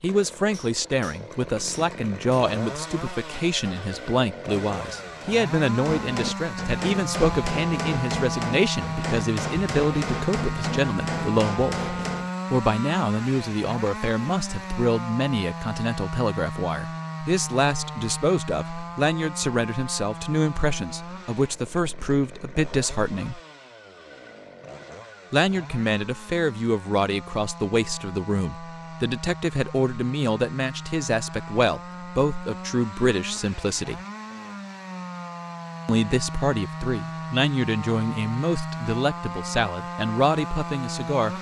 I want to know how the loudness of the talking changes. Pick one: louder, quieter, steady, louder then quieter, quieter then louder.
steady.